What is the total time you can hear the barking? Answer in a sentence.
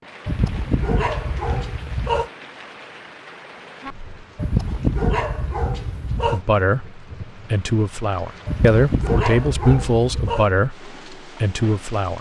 You can hear the barking for 6 seconds altogether.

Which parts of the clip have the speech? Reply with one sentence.
The speech can be heard from 6.2 to 12.1 s.